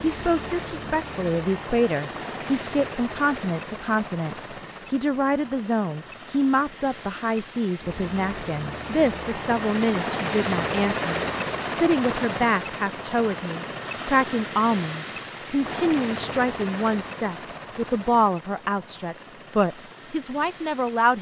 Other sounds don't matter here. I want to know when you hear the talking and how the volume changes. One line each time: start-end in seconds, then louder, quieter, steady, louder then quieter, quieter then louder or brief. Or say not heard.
0.0-21.1 steady.